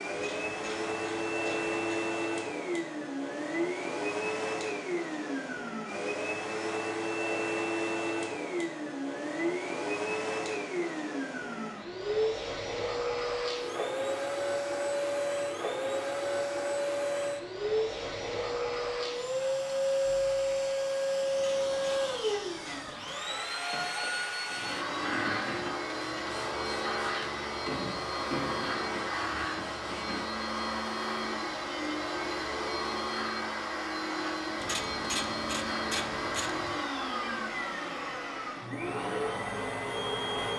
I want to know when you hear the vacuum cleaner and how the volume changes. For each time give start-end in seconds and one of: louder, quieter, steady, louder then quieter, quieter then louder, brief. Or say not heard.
0.0-40.5 steady.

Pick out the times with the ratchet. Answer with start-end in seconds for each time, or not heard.
0.1-1.9, 21.3-23.2, 34.6-36.8.